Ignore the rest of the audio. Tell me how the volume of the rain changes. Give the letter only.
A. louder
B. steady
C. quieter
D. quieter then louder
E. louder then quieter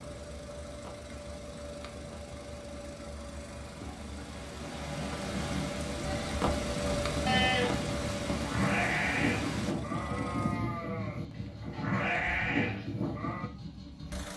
A.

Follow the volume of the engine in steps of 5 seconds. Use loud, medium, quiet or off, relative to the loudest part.
medium, loud, medium.